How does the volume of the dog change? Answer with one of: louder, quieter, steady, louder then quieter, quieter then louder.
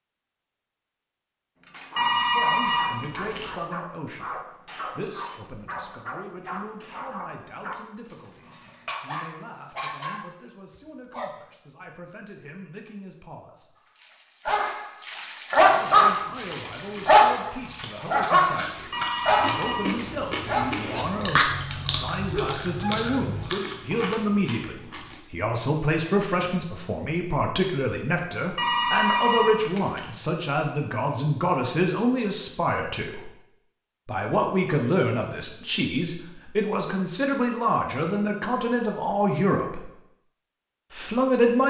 louder then quieter.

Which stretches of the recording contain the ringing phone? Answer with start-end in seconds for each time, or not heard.
1.9-3.5, 18.9-19.9, 28.6-30.1.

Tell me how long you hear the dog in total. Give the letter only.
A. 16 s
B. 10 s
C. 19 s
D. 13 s
C.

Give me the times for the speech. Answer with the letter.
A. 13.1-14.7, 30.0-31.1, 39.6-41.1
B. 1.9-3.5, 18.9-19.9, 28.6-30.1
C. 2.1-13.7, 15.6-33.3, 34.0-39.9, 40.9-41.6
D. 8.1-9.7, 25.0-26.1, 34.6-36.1
C.